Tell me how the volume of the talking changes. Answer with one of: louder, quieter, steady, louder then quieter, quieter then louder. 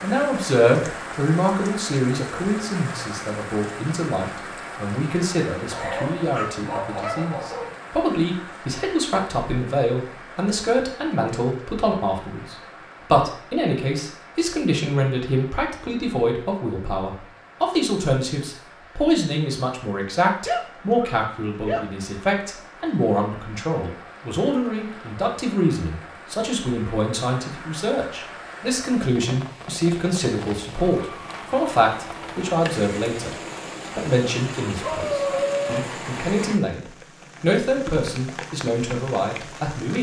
steady.